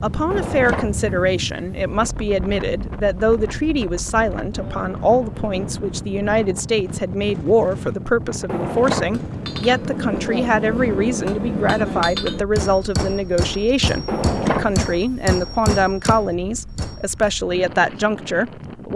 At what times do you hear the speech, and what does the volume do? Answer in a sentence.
The speech can be heard from 0.0 to 18.9 s, at a steady volume.